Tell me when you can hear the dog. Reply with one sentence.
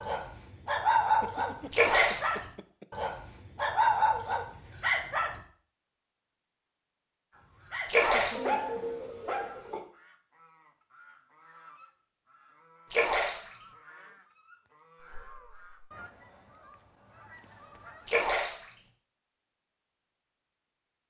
The dog can be heard from 0.0 to 5.4 s and from 7.3 to 9.8 s.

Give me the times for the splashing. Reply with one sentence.
You can hear the splashing from 1.7 to 2.4 s, from 7.8 to 8.6 s, from 12.9 to 13.5 s and from 18.1 to 18.6 s.